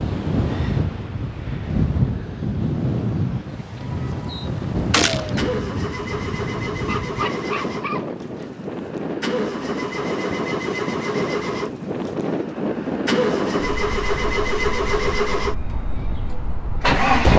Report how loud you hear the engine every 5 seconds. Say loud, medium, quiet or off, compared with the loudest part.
off, medium, loud, loud.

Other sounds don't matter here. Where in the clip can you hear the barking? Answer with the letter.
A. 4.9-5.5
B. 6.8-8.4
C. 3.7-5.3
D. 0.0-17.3
B.